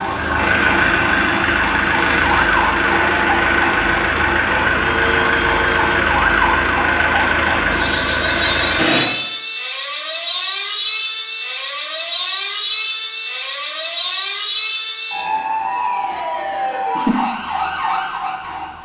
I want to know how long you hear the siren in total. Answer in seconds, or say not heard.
19 s.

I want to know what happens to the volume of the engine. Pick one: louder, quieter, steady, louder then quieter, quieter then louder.
steady.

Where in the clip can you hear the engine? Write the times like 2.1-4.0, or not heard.
0.0-9.1.